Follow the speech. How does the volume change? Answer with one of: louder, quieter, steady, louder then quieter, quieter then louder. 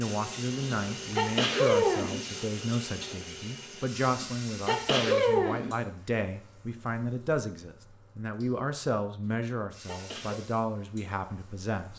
steady.